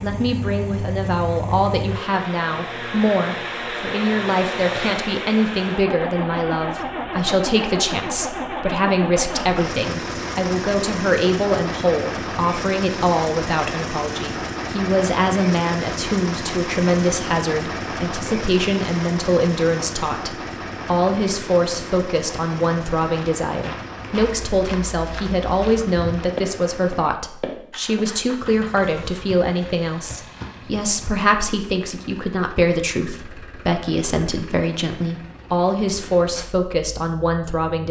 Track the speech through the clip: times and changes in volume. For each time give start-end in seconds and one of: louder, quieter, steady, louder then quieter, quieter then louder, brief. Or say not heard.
0.0-37.8 steady.